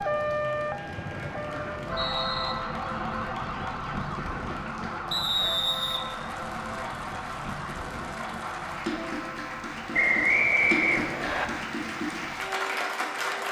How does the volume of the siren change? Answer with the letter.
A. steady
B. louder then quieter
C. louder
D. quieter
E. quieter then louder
D.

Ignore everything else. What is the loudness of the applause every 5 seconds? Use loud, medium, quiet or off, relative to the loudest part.
quiet, medium, loud.